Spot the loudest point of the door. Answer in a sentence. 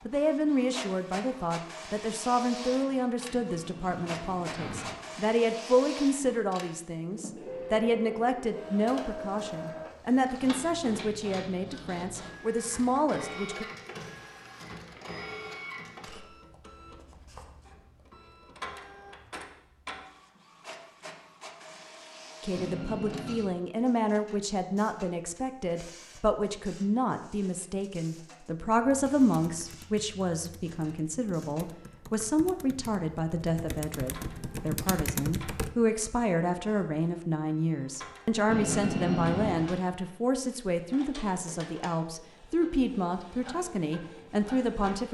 The loudest moment of the door is at 39 seconds.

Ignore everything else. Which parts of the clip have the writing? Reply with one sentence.
The writing can't be heard in this clip.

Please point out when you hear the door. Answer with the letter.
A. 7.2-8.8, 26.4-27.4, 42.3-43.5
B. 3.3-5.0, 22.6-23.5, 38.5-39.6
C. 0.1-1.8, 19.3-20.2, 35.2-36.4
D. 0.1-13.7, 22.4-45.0
B.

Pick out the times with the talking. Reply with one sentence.
You can hear the talking from 0.1 to 13.7 s and from 22.4 to 45.0 s.